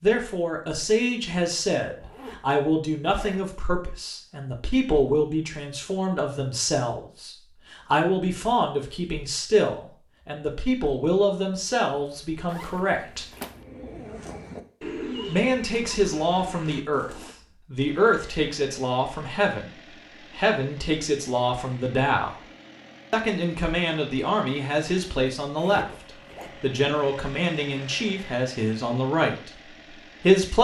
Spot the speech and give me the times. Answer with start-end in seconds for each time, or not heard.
0.0-13.2, 15.2-22.4, 23.1-30.5.